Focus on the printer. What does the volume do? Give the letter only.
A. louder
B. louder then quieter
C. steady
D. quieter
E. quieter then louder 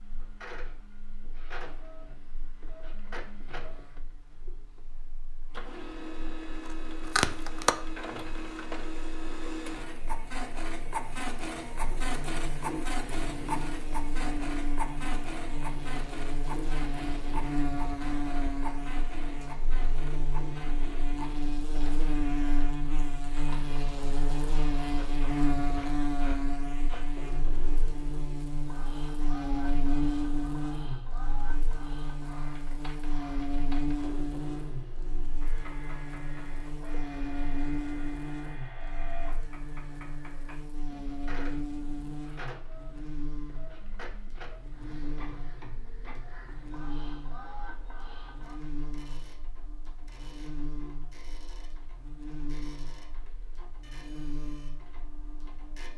D.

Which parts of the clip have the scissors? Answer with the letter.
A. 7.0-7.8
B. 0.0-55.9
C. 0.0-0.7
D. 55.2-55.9
A.